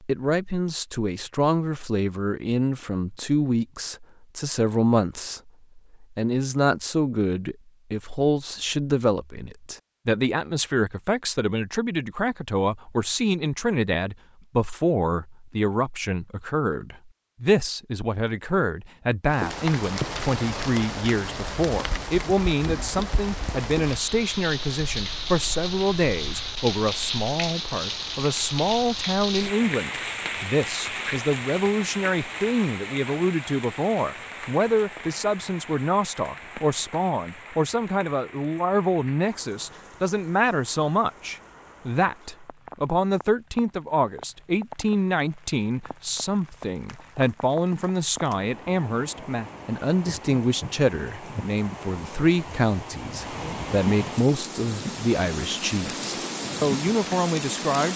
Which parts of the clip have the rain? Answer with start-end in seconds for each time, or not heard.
19.2-57.9.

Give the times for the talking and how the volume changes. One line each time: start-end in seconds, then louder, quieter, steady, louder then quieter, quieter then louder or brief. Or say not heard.
0.0-57.9 steady.